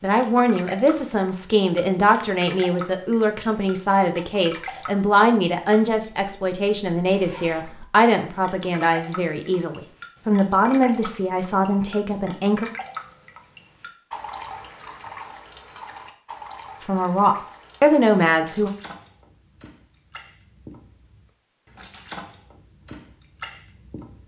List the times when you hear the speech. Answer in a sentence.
The speech can be heard from 0.0 to 12.7 s and from 16.8 to 18.7 s.